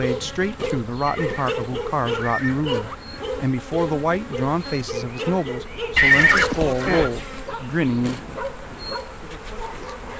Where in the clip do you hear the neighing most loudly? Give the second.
6 s.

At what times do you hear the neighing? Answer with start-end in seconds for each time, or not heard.
1.1-3.0, 6.0-7.1.